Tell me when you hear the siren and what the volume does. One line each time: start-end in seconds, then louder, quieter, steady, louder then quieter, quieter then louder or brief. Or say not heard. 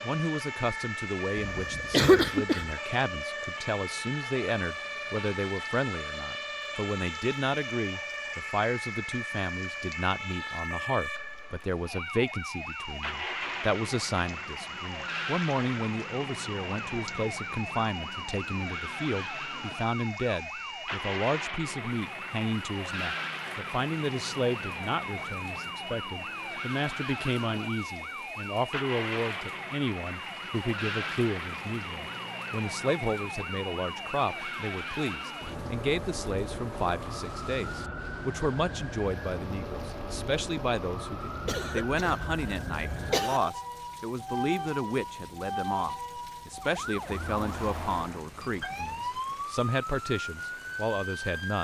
0.0-51.6 steady.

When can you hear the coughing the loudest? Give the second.
2 s.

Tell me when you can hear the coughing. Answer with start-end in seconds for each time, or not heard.
1.4-2.8, 41.4-43.4.